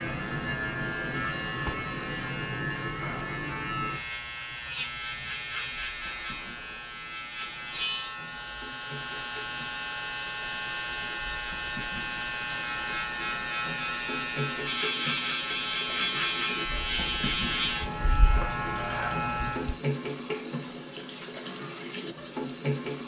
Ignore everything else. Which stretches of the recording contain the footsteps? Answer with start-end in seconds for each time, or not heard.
not heard.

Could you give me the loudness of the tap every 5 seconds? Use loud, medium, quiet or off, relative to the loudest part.
quiet, quiet, medium, loud, loud.